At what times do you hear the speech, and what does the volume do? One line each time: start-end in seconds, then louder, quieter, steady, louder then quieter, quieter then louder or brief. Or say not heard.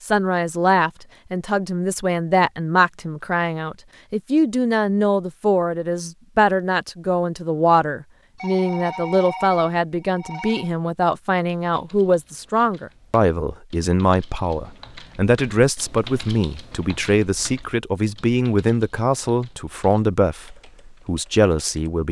0.0-22.0 steady.